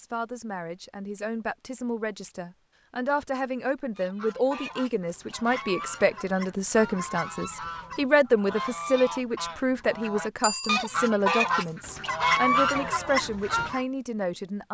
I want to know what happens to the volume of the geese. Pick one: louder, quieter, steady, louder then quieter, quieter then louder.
louder.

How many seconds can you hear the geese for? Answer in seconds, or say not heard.
10 s.